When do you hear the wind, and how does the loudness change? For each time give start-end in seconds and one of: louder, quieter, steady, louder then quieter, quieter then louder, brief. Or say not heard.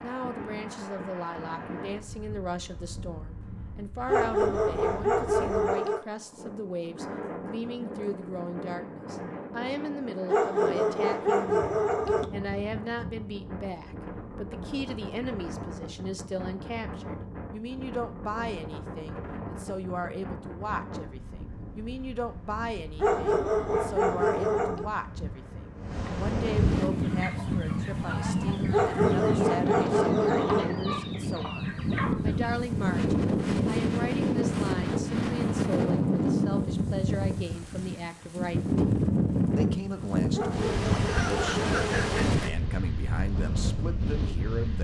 0.0-44.7 louder.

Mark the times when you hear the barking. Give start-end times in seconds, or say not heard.
4.0-6.0, 10.2-12.3, 23.0-24.9, 28.7-30.6, 40.4-42.1.